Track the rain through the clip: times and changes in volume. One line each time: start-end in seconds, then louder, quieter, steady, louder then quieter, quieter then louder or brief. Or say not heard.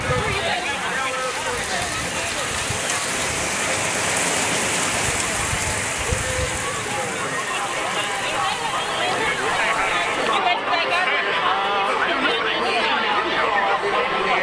0.0-10.4 louder then quieter.